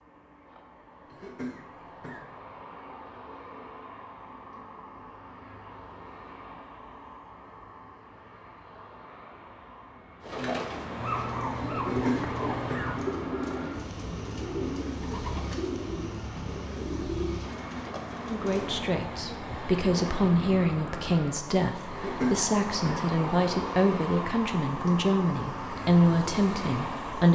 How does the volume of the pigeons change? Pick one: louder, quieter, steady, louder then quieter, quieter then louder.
steady.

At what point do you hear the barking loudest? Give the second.
11 s.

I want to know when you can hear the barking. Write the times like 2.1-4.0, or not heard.
11.0-13.1.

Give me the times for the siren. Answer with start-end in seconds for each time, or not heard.
not heard.